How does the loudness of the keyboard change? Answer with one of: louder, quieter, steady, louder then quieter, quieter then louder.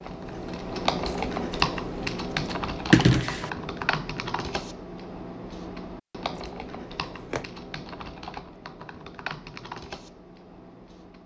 quieter.